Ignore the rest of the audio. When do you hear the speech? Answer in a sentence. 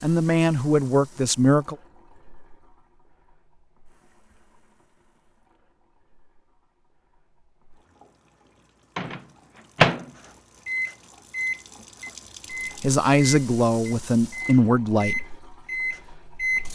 You can hear the speech from 0.0 to 1.8 s and from 12.8 to 15.2 s.